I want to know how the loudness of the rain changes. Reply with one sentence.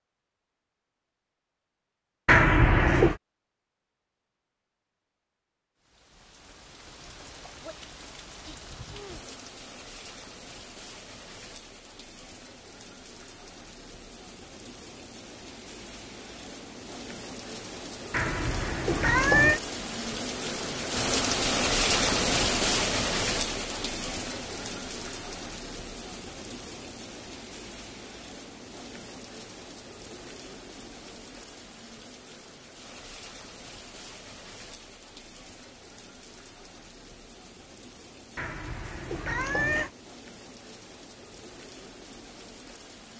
The volume of the rain goes up, then down.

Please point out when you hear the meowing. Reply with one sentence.
The meowing can be heard from 2.2 to 3.2 s, from 18.1 to 19.6 s and from 38.4 to 39.9 s.